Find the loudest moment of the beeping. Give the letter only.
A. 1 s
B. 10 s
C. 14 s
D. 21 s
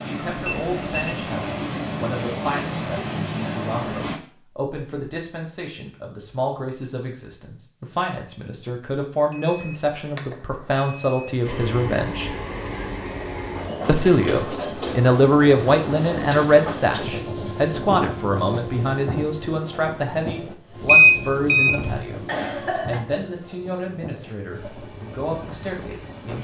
D.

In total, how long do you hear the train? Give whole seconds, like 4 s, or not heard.
19 s.